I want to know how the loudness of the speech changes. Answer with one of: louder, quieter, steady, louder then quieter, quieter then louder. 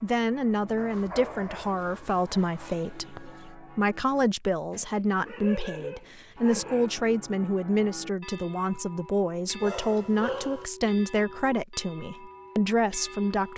steady.